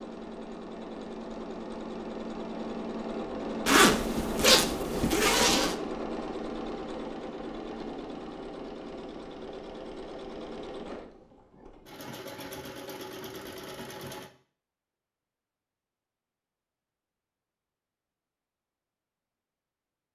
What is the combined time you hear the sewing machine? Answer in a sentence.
You can hear the sewing machine for 14 seconds altogether.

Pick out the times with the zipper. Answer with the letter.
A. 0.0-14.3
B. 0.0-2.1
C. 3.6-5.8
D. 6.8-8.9
C.